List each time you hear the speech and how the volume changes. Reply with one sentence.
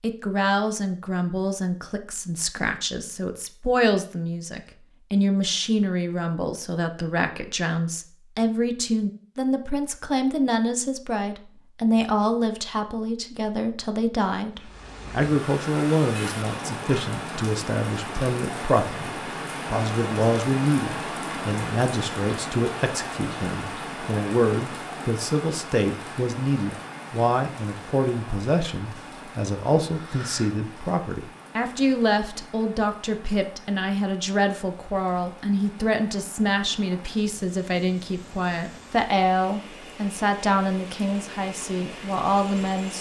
The speech can be heard from 0.0 to 42.9 s, at a steady volume.